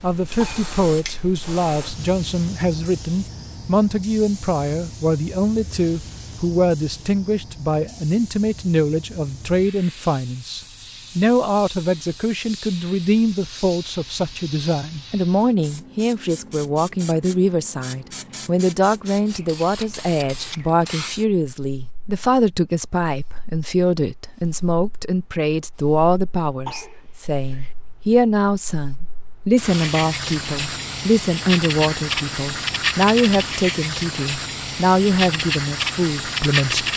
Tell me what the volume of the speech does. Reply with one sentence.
The volume of the speech stays about the same.